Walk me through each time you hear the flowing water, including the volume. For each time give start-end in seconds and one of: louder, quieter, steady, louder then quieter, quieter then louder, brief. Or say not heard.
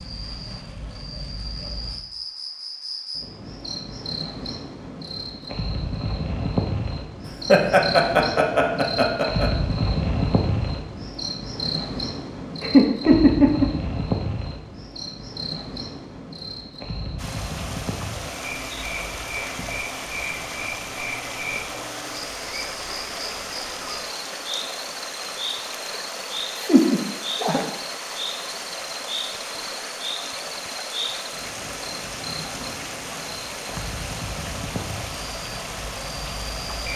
17.1-36.9 steady.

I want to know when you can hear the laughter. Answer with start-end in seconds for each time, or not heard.
7.2-9.5, 12.6-13.7, 26.6-27.6.